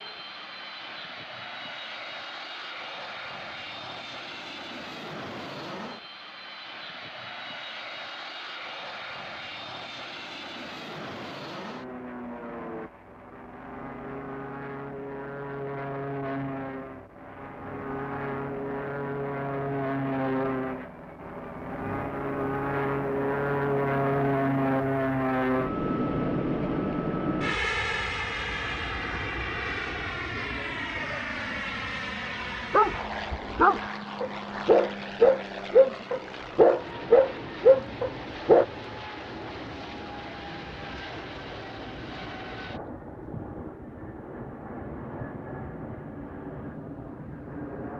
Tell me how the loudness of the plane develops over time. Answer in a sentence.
The loudness of the plane goes up, then down.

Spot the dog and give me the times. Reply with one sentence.
You can hear the dog from 32.7 to 38.6 s.